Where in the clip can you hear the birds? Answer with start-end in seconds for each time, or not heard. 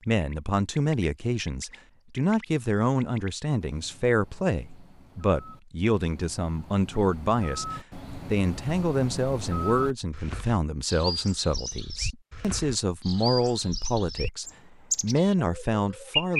0.0-16.3.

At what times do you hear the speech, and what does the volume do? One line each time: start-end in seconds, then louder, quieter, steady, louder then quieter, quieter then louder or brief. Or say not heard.
0.1-16.3 steady.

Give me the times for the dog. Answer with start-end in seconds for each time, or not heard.
not heard.